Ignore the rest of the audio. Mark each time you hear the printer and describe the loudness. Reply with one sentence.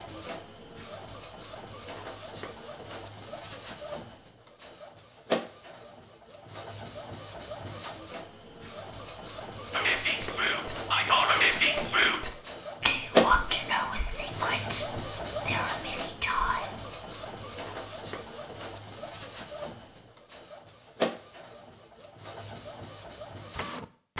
You can hear the printer from 0.0 to 24.1 s, getting louder then quieter.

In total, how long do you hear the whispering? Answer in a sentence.
The whispering can be heard for 7 seconds in total.